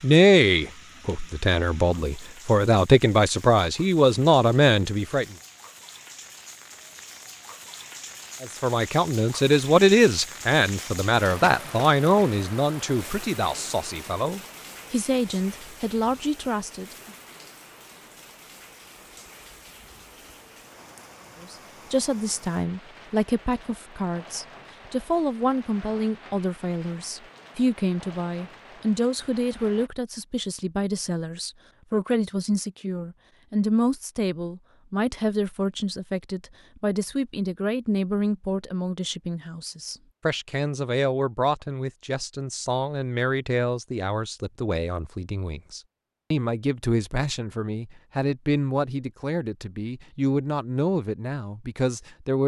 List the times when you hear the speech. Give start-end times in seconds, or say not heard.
0.0-5.2, 8.4-17.1, 21.4-52.4.